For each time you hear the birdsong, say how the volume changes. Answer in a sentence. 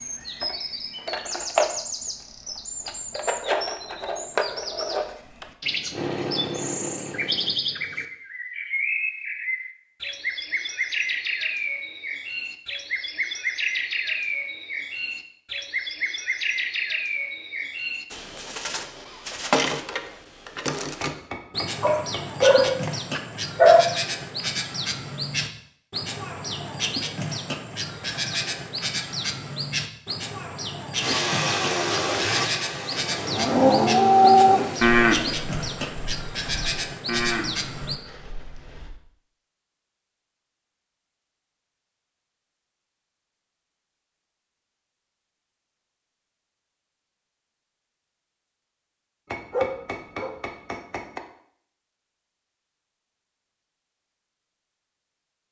The birdsong can be heard from 0.0 to 38.0 s, at a steady volume.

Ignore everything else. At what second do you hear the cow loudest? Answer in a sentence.
The volume of the cow peaks at 34 seconds.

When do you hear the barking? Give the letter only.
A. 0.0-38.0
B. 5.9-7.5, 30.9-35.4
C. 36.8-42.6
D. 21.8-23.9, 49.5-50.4
D.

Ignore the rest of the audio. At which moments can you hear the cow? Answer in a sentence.
The cow can be heard from 33.1 to 39.0 s.